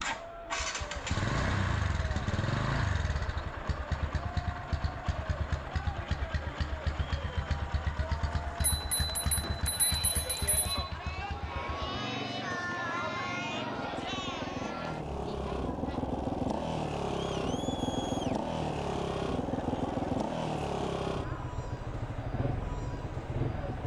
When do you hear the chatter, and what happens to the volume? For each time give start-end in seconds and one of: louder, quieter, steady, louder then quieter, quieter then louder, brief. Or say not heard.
0.0-23.8 louder then quieter.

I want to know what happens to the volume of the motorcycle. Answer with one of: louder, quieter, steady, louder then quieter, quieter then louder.
quieter then louder.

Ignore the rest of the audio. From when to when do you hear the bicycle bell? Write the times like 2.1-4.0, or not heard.
8.6-10.8.